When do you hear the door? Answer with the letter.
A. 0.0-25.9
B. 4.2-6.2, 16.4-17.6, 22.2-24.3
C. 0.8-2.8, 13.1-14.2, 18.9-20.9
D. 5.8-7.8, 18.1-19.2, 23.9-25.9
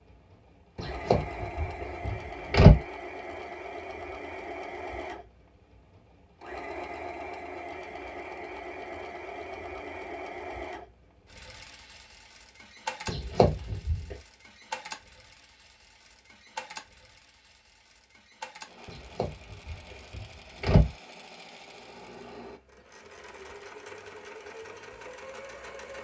C.